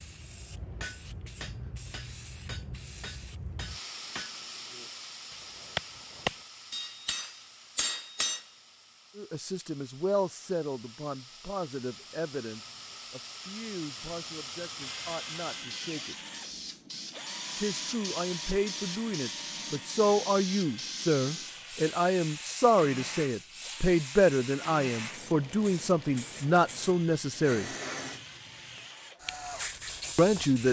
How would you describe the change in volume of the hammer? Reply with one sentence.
The volume of the hammer goes up.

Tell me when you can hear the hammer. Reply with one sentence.
The hammer can be heard from 0.3 to 8.4 s.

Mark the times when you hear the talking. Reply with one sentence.
You can hear the talking from 9.2 to 16.1 s, from 17.6 to 27.7 s and from 30.1 to 30.6 s.